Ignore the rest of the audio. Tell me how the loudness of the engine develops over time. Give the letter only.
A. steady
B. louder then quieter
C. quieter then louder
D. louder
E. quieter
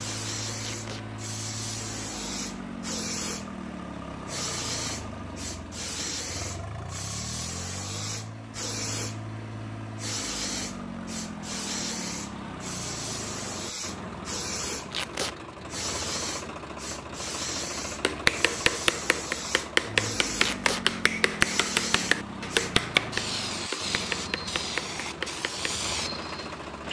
A.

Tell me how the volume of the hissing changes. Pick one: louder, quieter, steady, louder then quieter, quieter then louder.
steady.